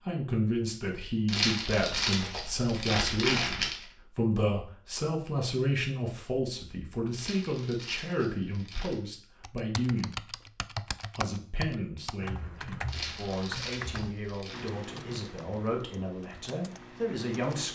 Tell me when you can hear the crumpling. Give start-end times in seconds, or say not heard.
1.2-3.9, 7.1-9.1, 12.8-14.7.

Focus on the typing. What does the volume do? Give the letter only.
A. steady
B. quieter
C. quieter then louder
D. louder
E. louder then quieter
B.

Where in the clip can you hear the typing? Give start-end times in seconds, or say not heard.
9.4-17.7.